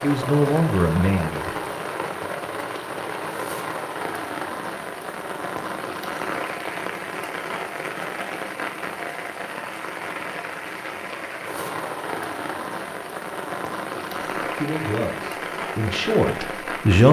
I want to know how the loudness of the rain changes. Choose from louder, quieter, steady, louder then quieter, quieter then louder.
steady.